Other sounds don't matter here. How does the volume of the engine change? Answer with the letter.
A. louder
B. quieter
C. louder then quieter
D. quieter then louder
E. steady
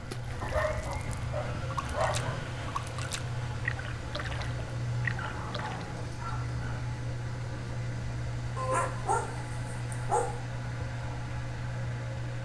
E.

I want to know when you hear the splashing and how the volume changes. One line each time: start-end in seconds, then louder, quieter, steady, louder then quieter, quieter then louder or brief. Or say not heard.
0.1-5.9 louder.